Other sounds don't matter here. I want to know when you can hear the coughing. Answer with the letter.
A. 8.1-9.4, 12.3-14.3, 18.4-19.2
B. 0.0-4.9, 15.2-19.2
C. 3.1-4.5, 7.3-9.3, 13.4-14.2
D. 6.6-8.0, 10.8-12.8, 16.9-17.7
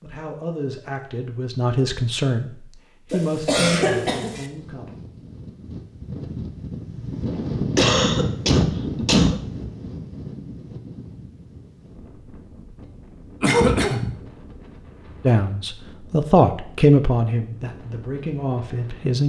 C.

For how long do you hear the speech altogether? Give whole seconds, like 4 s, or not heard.
9 s.